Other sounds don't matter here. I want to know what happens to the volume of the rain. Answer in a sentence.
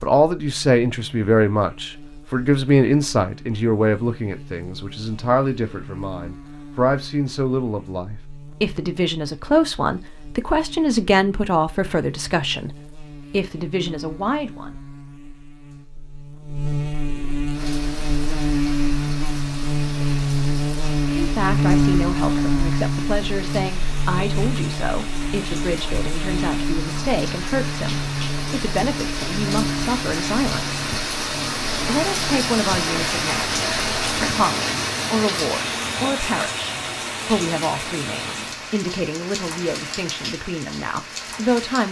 The loudness of the rain goes up, then down.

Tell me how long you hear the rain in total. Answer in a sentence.
The rain can be heard for 24 seconds in total.